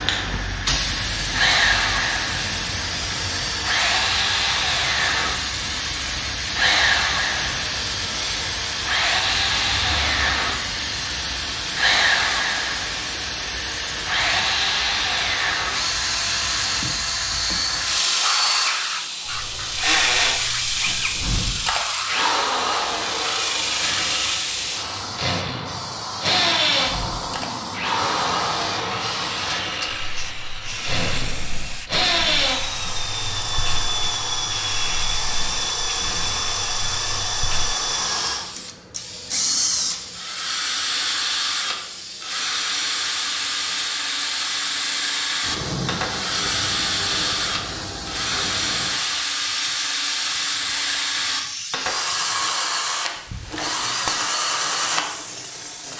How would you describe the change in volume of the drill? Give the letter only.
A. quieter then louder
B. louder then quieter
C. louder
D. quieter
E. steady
E.